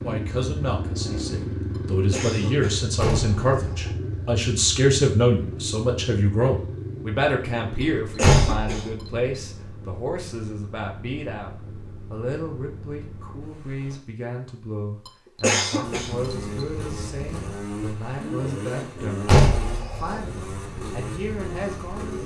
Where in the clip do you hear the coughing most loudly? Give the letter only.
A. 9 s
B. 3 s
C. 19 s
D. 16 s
D.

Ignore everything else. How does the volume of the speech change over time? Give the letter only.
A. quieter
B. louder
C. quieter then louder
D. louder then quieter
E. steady
A.